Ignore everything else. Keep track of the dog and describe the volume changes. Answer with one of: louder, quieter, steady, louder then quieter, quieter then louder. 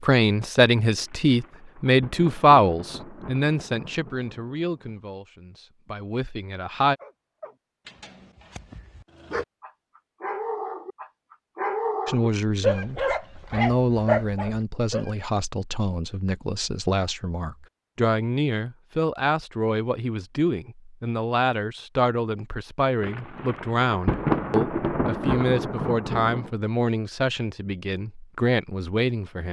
louder.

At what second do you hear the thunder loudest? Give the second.
24 s.